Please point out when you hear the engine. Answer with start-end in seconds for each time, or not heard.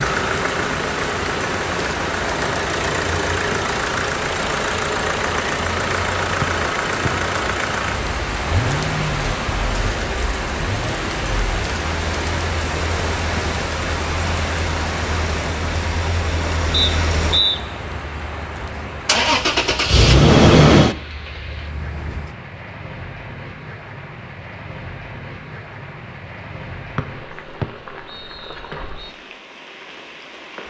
0.0-22.3.